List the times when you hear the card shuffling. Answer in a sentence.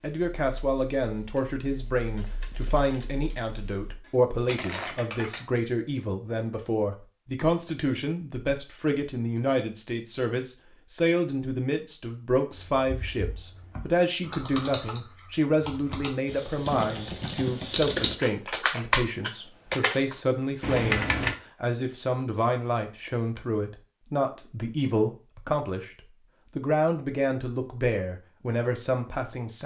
The card shuffling can be heard from 4.5 to 5.0 s.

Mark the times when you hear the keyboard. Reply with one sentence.
The keyboard can be heard from 0.0 to 5.4 s and from 12.5 to 21.4 s.